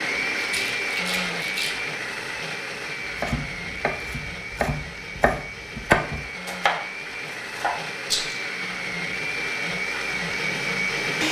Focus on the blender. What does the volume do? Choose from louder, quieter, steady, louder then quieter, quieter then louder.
quieter then louder.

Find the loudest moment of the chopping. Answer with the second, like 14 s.
6 s.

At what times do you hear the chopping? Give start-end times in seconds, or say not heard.
3.1-7.8.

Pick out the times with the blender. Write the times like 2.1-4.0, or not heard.
0.0-11.2.